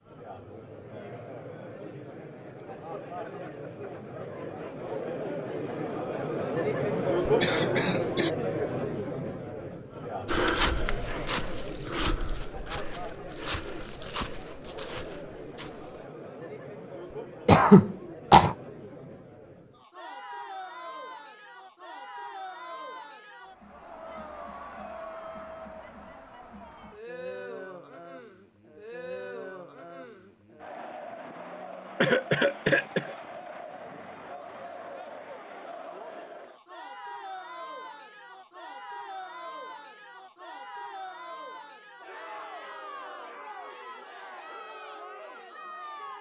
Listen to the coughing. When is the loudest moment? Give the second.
18 s.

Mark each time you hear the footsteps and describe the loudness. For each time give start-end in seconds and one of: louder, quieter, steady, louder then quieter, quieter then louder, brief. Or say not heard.
10.2-16.1 quieter.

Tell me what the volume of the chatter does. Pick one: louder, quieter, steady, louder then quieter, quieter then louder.
quieter.